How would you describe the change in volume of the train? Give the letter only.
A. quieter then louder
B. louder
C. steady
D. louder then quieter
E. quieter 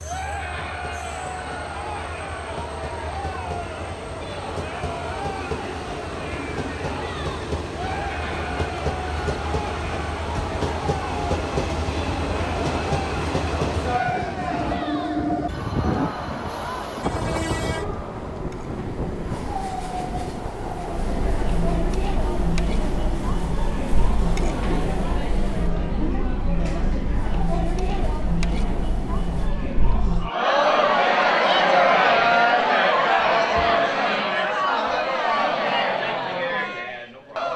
D.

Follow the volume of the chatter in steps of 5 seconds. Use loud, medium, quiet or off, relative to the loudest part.
quiet, quiet, quiet, quiet, medium, medium, loud, medium.